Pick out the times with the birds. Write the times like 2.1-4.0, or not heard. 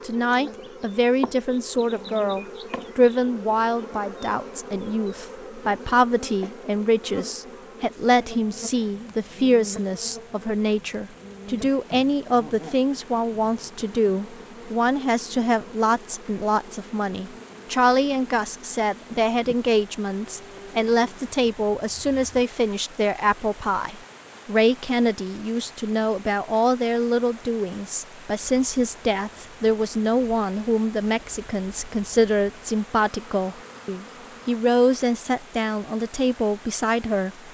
not heard.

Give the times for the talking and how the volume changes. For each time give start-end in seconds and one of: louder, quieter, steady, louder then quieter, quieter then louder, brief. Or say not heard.
0.0-37.3 steady.